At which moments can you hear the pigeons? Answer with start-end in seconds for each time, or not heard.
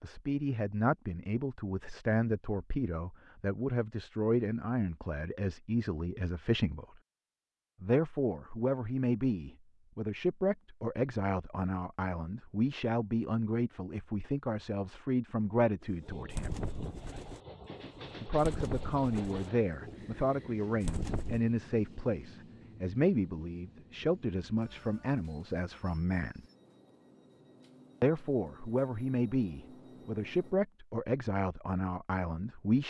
15.9-21.4.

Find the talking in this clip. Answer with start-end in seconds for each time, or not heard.
0.0-6.8, 7.8-16.6, 18.2-26.4, 28.0-32.8.